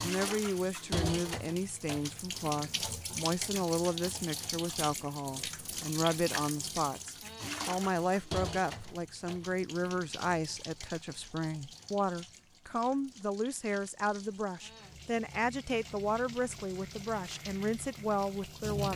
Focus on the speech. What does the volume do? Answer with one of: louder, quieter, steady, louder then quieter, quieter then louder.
steady.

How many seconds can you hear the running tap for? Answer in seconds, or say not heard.
19 s.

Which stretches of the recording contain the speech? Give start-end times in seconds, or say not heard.
0.0-18.9.